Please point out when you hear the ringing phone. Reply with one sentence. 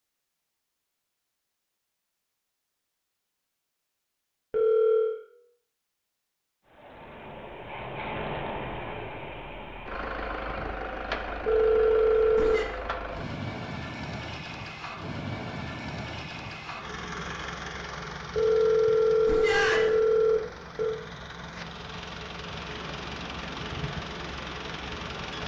You can hear the ringing phone from 4.5 to 5.2 s, from 11.4 to 12.7 s and from 18.4 to 20.9 s.